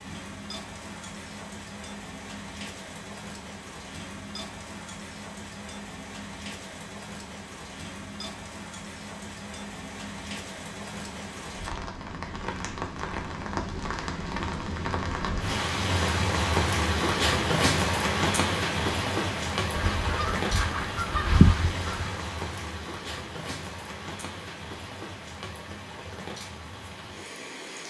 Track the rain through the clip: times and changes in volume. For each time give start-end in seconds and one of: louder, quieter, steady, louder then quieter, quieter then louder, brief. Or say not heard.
0.0-27.8 louder then quieter.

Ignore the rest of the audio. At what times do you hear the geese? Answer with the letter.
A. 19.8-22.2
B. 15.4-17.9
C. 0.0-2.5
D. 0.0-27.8
A.